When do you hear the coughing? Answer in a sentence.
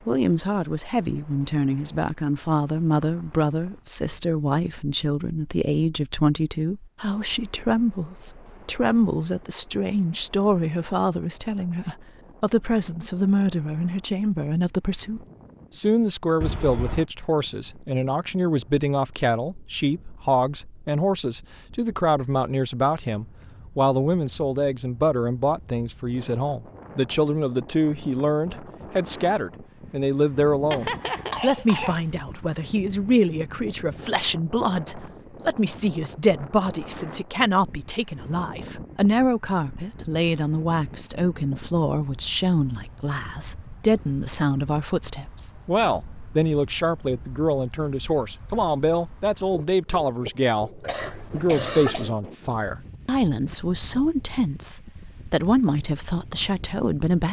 The coughing can be heard from 16.4 to 17.1 s, from 30.7 to 32.0 s and from 50.8 to 52.1 s.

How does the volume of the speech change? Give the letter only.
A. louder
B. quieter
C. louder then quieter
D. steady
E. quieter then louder
D.